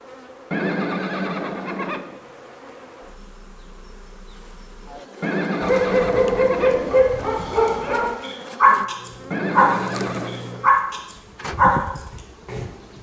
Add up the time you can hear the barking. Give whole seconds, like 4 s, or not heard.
7 s.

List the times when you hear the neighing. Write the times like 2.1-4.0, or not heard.
0.5-2.2, 5.2-7.0, 9.3-10.4.